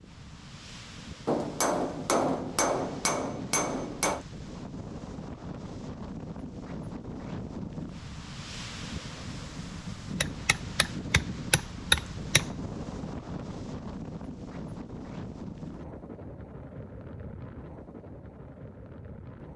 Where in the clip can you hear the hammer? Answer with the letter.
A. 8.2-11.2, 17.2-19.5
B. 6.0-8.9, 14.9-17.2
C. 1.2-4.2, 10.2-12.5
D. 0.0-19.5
C.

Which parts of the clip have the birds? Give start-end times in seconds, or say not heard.
not heard.